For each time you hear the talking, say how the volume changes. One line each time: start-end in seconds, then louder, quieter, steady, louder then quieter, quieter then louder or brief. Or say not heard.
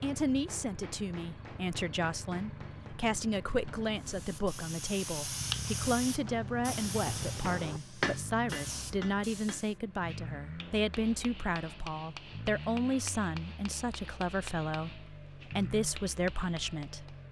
0.0-17.1 steady.